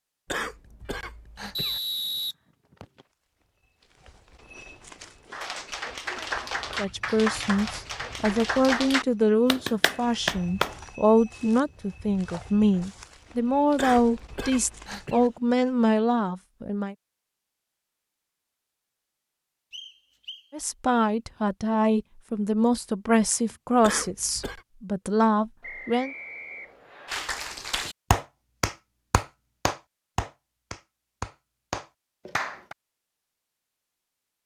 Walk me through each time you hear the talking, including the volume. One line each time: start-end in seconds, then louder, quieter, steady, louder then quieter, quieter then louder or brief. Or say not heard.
6.8-16.9 steady
20.5-26.1 steady.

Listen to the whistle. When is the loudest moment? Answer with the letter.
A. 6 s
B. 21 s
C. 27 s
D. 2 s
D.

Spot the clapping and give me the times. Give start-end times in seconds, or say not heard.
5.3-10.8, 27.1-32.8.